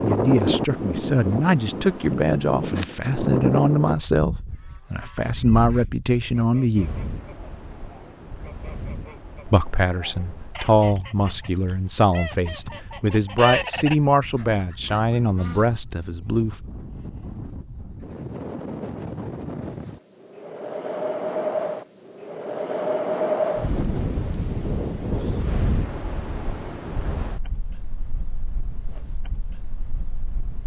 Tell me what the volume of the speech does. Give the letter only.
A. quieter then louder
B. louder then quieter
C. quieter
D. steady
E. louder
D.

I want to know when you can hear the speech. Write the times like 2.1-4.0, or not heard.
0.0-7.0, 9.4-16.6.